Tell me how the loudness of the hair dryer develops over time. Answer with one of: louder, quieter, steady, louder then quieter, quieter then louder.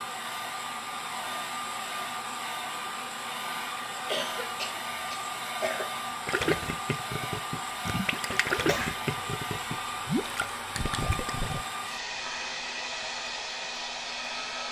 steady.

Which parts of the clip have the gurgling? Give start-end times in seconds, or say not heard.
6.2-11.7.